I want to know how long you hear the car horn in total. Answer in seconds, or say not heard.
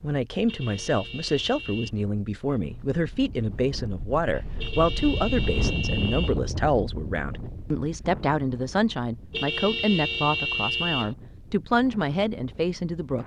5 s.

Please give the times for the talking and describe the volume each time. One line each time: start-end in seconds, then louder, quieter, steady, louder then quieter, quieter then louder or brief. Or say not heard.
0.0-13.2 steady.